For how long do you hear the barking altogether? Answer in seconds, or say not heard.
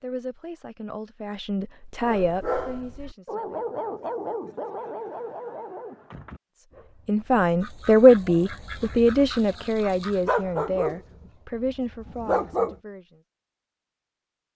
11 s.